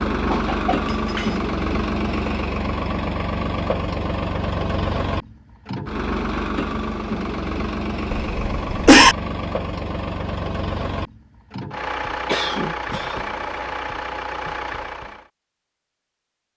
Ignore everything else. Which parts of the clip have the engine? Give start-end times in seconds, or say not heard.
0.0-15.3.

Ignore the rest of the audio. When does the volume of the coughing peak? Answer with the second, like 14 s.
9 s.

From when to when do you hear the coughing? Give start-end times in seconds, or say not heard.
0.1-1.4, 8.1-9.2, 12.2-13.2.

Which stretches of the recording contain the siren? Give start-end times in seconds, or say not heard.
not heard.